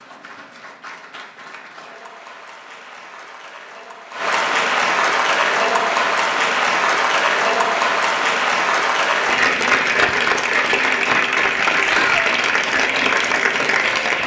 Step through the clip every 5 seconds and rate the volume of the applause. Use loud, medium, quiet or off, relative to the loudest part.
medium, loud, loud.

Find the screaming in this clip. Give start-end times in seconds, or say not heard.
11.8-12.3.